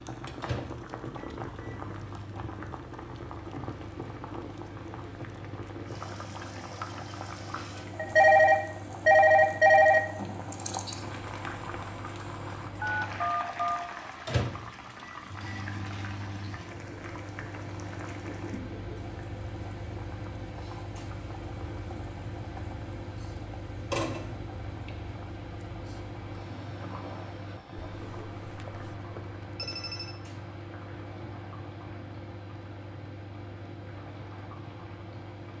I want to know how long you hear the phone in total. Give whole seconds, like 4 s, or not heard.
5 s.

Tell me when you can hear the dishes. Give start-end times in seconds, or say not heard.
not heard.